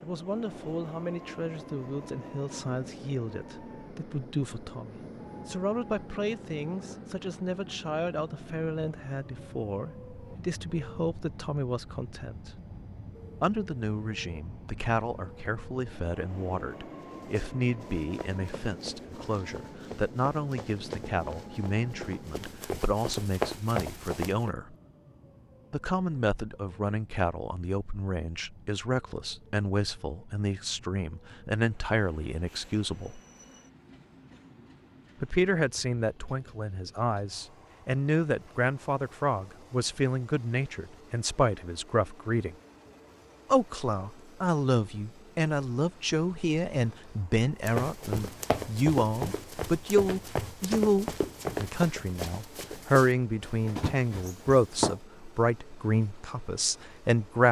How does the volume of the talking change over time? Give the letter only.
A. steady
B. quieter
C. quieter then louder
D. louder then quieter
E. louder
E.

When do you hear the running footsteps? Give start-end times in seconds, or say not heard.
17.0-24.5, 47.6-55.0.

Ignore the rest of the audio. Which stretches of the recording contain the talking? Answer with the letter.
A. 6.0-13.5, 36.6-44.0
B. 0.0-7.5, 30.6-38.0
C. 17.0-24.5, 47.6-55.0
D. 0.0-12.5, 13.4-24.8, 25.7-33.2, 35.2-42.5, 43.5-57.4
D.